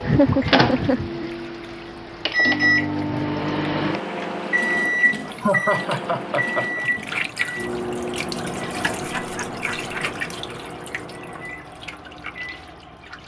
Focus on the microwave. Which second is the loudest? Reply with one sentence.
The loudest moment of the microwave is at 3 seconds.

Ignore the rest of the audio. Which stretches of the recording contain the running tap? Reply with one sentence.
You can hear the running tap from 0.1 to 13.2 s.